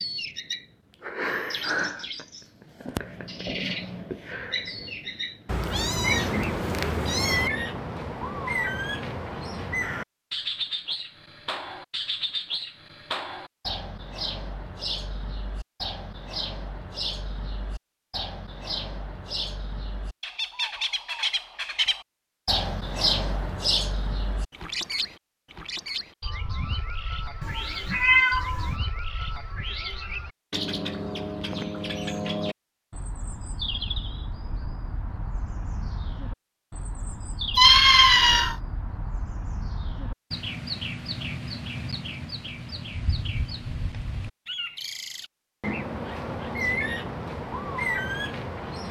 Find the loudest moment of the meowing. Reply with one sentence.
The volume of the meowing peaks at 38 seconds.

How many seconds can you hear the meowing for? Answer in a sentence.
The meowing can be heard for 4 seconds in total.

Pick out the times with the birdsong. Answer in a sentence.
You can hear the birdsong from 0.0 to 48.8 s.